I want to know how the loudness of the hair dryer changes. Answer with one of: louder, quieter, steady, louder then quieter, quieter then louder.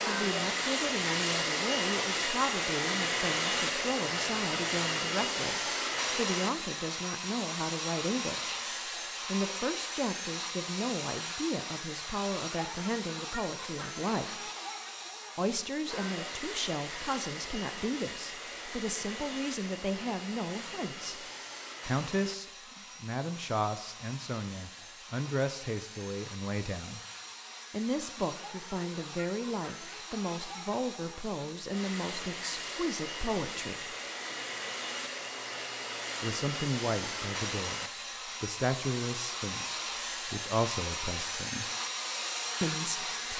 quieter then louder.